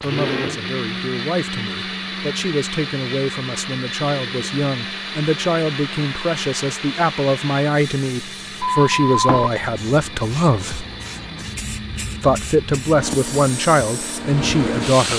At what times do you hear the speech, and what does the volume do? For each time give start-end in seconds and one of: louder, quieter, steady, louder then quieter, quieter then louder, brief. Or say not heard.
0.0-10.8 louder
12.2-15.1 brief.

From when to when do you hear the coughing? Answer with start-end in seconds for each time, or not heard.
not heard.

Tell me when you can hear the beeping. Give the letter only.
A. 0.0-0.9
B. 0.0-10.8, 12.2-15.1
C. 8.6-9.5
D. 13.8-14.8
C.